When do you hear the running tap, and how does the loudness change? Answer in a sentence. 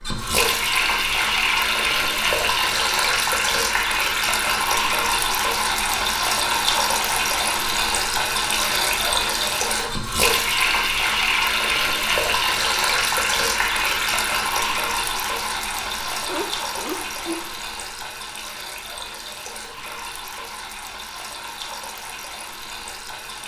The running tap can be heard from 0.0 to 23.4 s, getting quieter.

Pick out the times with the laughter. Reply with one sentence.
The laughter can be heard from 16.1 to 17.6 s.